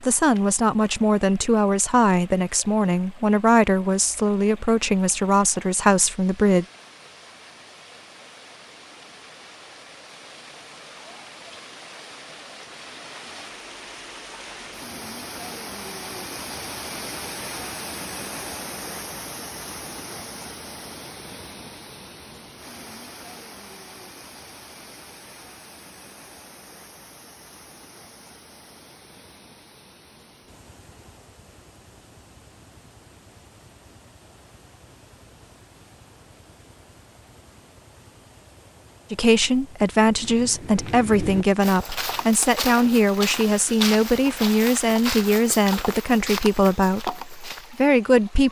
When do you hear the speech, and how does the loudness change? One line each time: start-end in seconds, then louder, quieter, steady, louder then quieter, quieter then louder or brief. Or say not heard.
0.0-6.7 steady
39.1-48.4 steady.